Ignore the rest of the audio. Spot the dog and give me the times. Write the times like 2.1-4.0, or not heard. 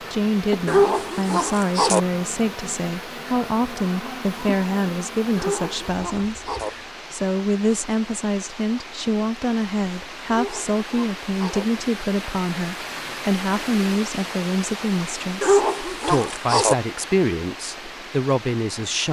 0.7-2.0, 5.3-6.7, 10.3-11.7, 15.4-16.8.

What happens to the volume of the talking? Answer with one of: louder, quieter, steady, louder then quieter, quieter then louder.
steady.